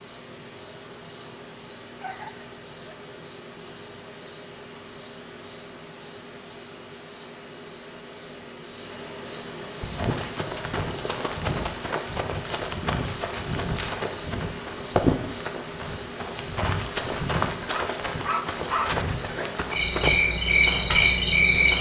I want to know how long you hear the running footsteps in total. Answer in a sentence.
The running footsteps can be heard for 10 seconds in total.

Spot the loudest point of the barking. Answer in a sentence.
The volume of the barking peaks at 19 seconds.